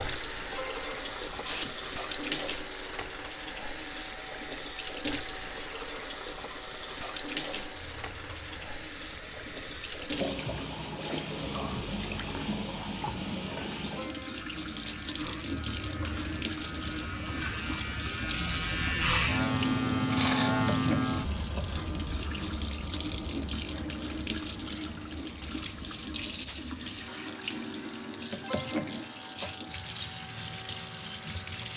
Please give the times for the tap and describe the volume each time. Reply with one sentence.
You can hear the tap from 0.0 to 31.7 s, at a steady volume.